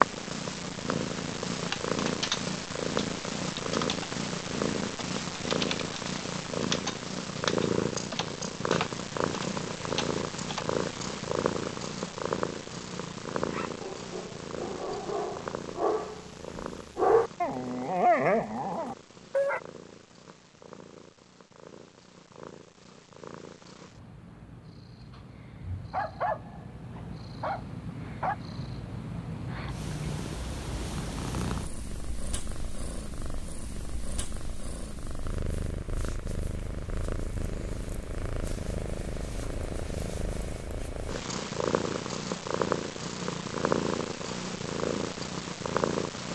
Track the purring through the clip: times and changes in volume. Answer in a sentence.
You can hear the purring from 0.0 to 46.3 s, getting quieter then louder.